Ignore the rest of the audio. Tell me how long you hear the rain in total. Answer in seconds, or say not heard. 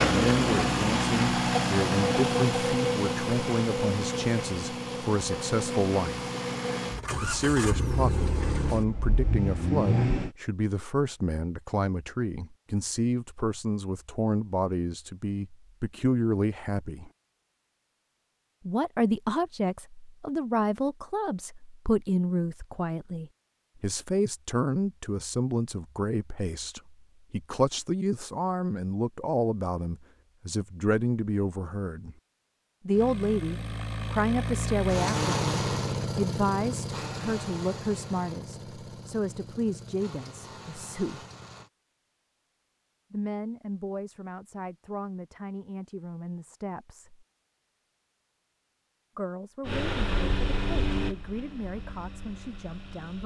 not heard.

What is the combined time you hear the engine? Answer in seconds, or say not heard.
23 s.